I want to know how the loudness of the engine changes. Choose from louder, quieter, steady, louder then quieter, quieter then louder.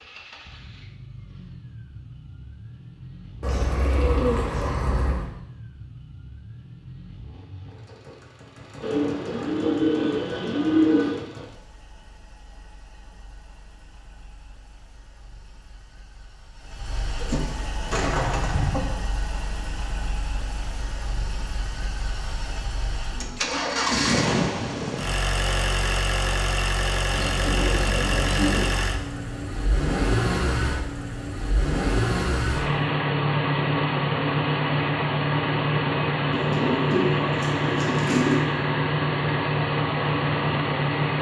louder.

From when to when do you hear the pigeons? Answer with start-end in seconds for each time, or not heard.
3.4-5.2, 8.8-11.2, 17.1-18.8, 27.1-28.7, 36.3-38.5.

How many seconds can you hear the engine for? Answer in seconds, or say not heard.
41 s.